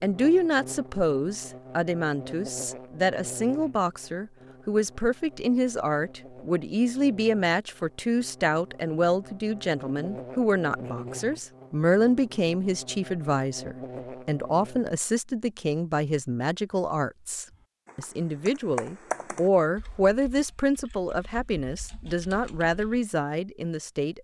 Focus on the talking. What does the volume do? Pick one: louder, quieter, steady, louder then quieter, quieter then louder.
steady.